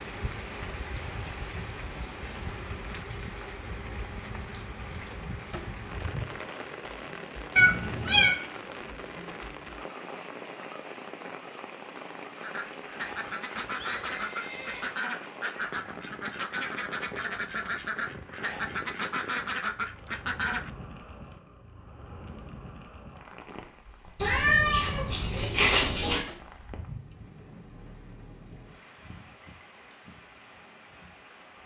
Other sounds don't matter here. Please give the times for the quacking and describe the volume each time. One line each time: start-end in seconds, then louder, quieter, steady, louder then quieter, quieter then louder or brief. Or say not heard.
12.3-20.7 steady.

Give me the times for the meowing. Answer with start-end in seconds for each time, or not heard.
7.5-8.3, 24.1-26.2.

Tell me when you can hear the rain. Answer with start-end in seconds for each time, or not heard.
0.0-31.6.